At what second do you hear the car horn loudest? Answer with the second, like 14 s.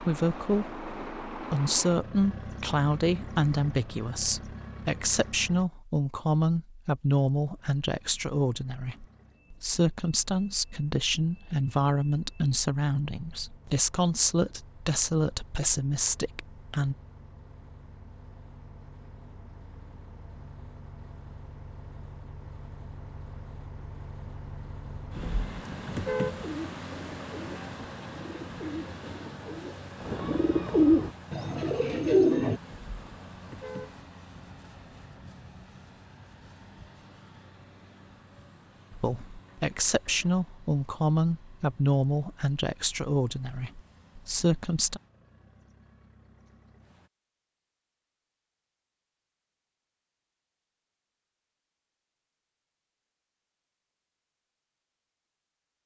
26 s.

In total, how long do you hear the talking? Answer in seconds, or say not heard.
23 s.